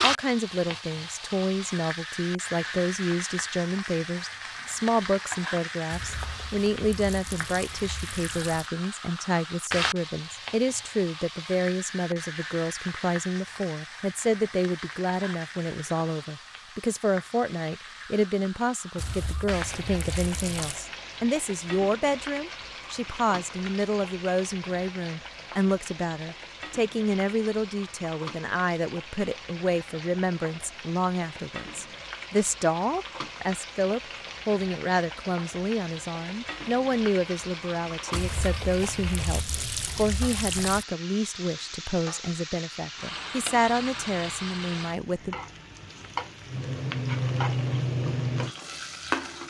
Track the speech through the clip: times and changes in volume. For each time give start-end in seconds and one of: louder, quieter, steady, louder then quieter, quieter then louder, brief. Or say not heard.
0.0-45.4 steady.